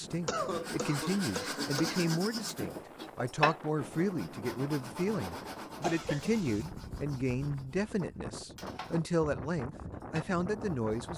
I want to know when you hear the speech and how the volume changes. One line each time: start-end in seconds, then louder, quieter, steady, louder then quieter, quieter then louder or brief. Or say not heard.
0.0-11.1 steady.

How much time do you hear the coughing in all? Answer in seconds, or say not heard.
3 s.